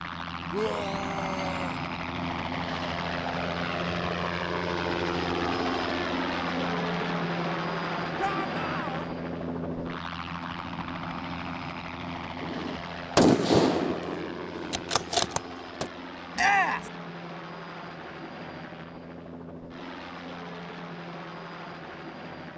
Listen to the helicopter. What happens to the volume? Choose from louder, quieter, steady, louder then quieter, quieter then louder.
quieter.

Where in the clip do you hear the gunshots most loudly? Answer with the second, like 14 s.
13 s.